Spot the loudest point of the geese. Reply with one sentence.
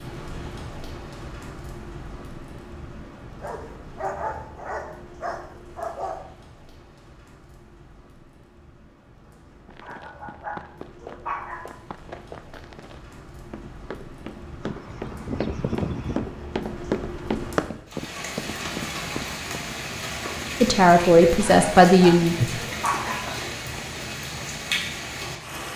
The loudest moment of the geese is at 16 seconds.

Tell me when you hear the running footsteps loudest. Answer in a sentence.
The volume of the running footsteps peaks at 17 seconds.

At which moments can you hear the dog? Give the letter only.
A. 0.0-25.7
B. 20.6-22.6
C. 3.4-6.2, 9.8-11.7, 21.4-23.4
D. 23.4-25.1
C.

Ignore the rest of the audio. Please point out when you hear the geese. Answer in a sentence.
You can hear the geese from 14.6 to 16.3 s.